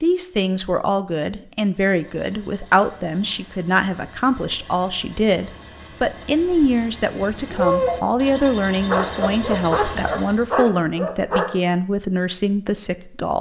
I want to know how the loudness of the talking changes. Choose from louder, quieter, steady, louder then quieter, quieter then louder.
steady.